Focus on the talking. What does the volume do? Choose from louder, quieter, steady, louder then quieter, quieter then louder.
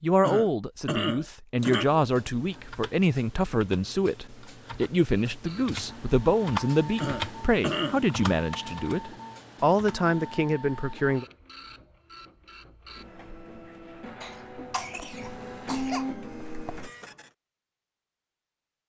steady.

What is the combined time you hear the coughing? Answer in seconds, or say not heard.
5 s.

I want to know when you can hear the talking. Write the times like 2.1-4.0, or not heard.
0.0-11.2.